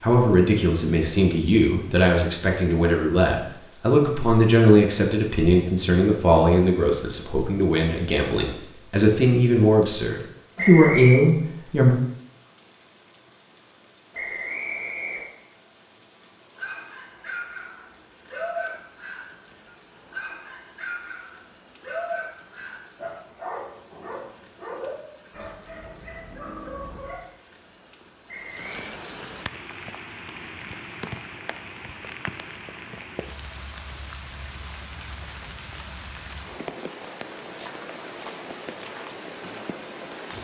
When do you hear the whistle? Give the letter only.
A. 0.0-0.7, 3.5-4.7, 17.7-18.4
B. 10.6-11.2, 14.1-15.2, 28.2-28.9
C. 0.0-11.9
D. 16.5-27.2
B.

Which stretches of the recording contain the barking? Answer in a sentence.
You can hear the barking from 16.5 to 27.2 s.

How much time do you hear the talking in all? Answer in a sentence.
You can hear the talking for 12 seconds altogether.